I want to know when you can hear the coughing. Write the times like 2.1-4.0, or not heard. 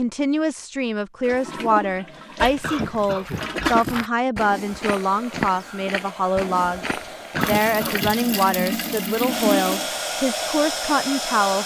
2.6-4.0, 7.3-8.4.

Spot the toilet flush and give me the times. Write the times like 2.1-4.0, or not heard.
1.2-3.9, 7.4-9.9.